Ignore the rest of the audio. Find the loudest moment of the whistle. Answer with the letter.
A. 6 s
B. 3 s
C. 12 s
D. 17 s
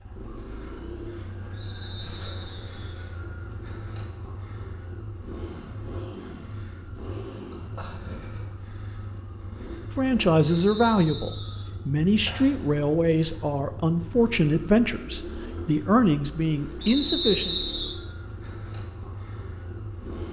D.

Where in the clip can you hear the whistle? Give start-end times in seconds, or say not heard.
1.5-2.8, 10.6-11.7, 16.8-17.9.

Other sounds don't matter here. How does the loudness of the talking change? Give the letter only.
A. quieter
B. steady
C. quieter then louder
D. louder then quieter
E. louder
B.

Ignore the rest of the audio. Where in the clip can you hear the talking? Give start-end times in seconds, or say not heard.
9.9-17.6.